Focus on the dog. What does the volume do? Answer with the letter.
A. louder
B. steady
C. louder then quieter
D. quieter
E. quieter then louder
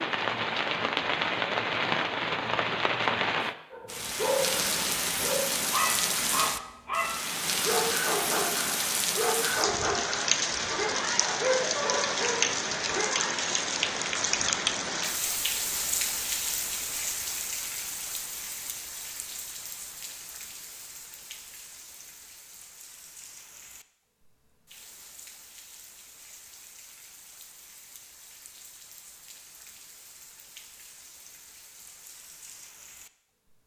B.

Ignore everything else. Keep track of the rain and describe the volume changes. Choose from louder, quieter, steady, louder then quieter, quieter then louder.
quieter.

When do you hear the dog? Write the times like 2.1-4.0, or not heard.
3.7-13.3.